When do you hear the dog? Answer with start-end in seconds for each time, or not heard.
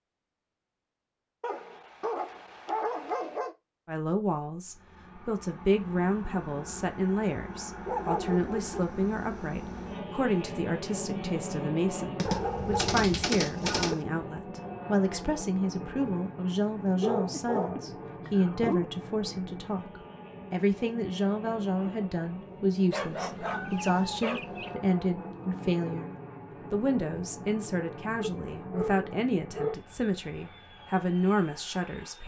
1.4-3.5, 7.8-8.9, 12.2-13.9, 16.9-18.9, 22.9-24.8, 28.1-29.8.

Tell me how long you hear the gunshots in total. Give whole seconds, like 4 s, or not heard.
2 s.